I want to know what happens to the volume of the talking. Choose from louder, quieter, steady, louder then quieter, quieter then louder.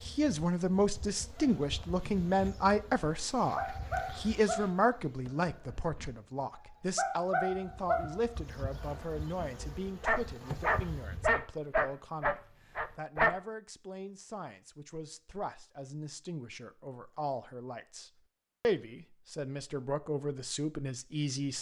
quieter then louder.